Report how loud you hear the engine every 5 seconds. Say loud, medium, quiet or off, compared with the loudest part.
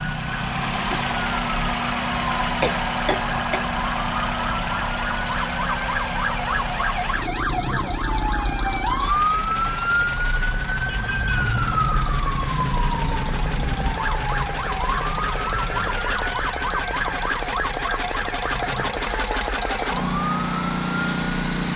loud, medium, medium, loud, loud.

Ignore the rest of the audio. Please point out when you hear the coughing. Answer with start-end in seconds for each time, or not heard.
2.4-3.6.